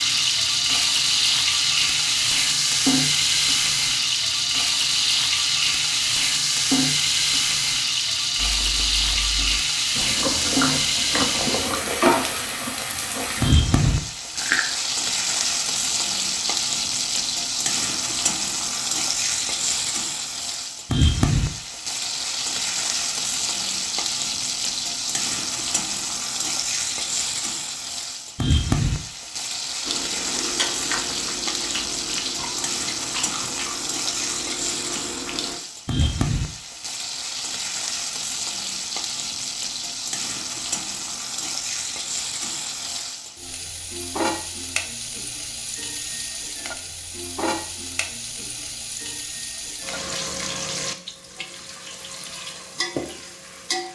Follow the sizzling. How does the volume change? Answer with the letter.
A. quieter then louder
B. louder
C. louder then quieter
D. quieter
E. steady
D.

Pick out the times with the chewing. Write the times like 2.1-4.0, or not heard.
8.3-14.7, 29.9-36.1.